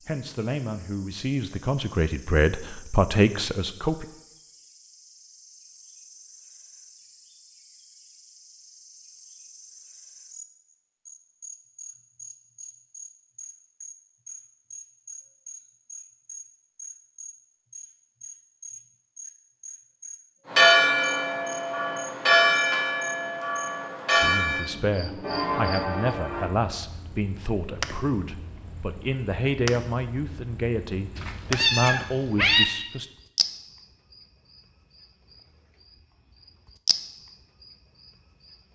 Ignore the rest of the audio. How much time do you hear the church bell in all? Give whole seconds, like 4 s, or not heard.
6 s.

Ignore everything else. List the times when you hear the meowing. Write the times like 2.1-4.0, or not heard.
31.1-32.6.